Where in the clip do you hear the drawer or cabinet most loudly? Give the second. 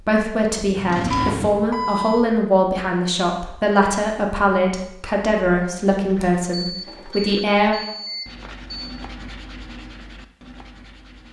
1 s.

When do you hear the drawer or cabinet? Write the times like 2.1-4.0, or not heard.
0.8-1.7, 6.2-7.2.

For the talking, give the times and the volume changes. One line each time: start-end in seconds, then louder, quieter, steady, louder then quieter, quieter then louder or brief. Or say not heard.
0.1-7.8 steady.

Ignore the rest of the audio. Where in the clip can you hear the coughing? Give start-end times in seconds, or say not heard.
not heard.